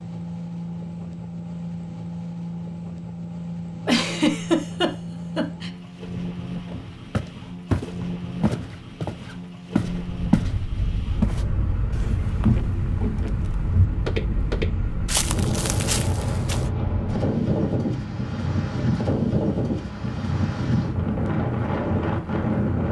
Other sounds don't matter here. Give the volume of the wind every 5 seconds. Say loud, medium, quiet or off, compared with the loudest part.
off, off, medium, loud, loud.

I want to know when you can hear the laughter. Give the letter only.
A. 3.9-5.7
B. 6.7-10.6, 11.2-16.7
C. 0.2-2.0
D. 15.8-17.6
A.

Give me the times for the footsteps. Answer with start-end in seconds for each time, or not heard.
6.7-10.6, 11.2-16.7.